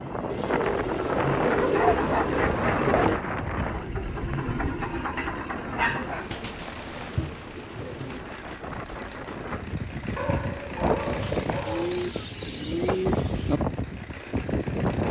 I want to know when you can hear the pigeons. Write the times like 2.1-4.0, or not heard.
0.3-3.2, 5.8-8.2, 11.0-13.6.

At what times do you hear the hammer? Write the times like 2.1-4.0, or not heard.
not heard.